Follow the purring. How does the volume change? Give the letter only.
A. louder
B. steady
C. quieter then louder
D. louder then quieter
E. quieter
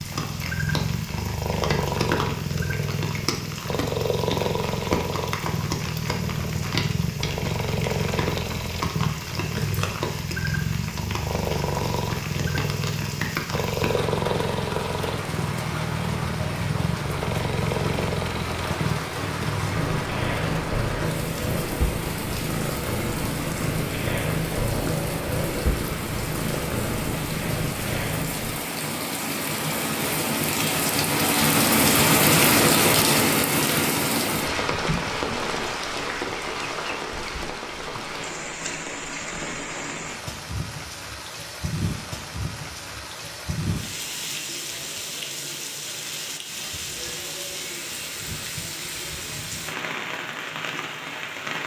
B.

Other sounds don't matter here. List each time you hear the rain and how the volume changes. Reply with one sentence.
You can hear the rain from 0.0 to 51.6 s, getting louder then quieter.